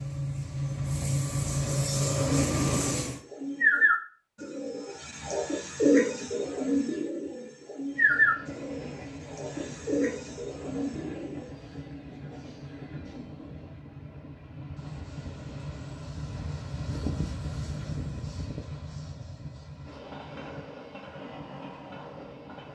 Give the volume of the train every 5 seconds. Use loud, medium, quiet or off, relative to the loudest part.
loud, quiet, quiet, medium, quiet.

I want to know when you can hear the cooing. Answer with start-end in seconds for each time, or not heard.
2.0-11.5.